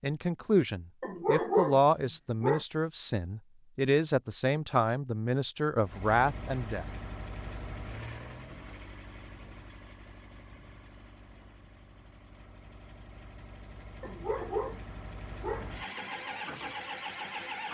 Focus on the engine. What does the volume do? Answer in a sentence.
The volume of the engine goes down, then up.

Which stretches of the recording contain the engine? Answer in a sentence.
The engine can be heard from 5.8 to 17.6 s.